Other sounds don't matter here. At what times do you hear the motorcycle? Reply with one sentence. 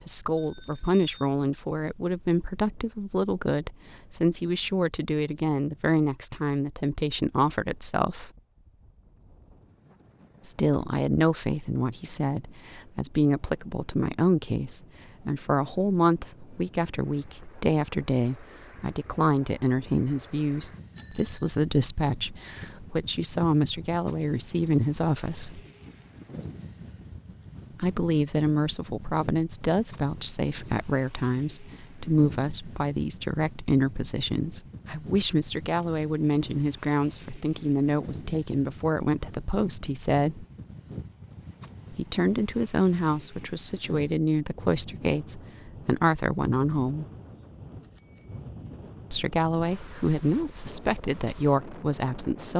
You can't hear the motorcycle here.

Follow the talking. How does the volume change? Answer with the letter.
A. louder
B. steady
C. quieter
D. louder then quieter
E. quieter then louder
B.